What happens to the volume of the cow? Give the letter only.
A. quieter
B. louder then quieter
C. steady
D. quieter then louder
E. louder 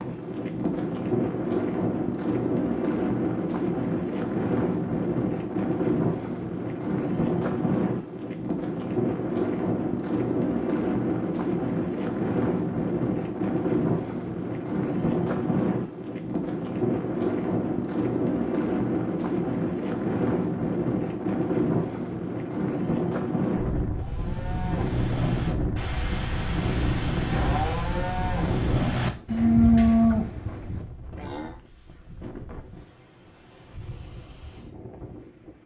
E.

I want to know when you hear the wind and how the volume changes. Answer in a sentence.
You can hear the wind from 0.0 to 35.6 s, getting quieter.